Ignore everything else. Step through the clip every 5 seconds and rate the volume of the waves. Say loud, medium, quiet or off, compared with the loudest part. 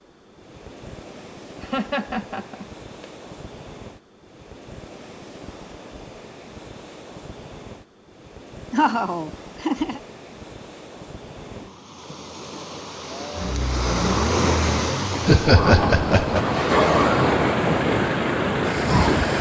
quiet, quiet, medium, loud.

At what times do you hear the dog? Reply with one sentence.
The dog can't be heard in this clip.